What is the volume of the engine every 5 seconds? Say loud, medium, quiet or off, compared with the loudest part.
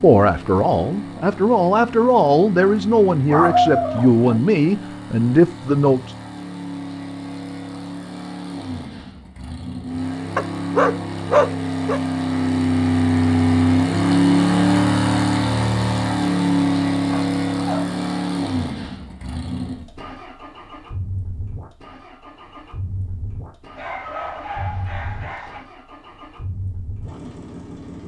quiet, quiet, loud, loud, quiet, quiet.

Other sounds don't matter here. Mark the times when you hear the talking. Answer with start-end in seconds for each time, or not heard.
0.0-6.0.